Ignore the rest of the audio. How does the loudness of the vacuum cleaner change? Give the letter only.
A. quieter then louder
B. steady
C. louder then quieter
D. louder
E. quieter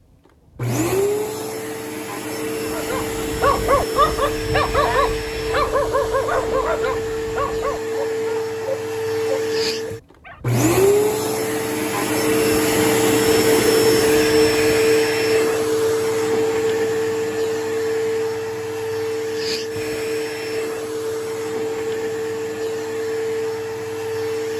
C.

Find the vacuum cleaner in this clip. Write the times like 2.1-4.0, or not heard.
0.6-24.5.